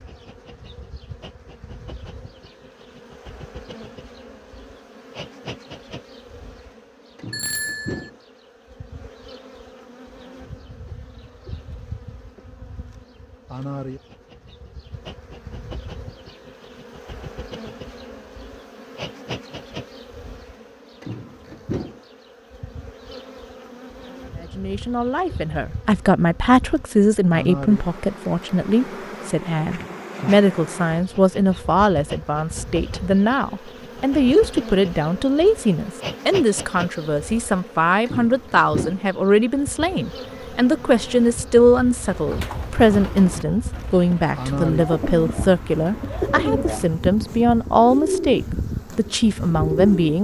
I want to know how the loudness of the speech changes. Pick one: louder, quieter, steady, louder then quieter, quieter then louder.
steady.